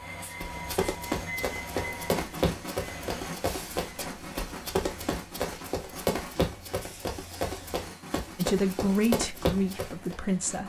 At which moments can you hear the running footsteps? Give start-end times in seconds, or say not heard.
0.4-10.2.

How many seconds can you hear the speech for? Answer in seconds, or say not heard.
2 s.